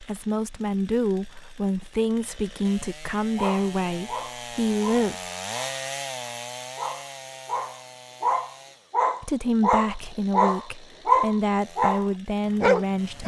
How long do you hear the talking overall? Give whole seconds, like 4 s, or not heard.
9 s.